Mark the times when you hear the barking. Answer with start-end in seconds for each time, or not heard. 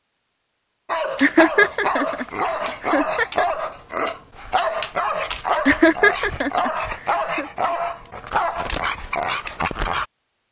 0.8-10.1.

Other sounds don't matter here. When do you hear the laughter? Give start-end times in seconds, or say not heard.
1.2-3.5, 5.7-7.5.